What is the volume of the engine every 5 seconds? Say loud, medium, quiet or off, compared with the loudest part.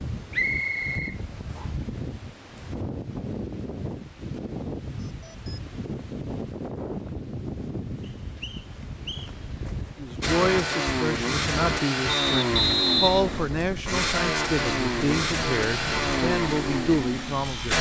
off, off, loud, loud.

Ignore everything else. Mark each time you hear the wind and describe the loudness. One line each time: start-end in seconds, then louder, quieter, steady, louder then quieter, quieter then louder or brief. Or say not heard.
0.0-17.7 steady.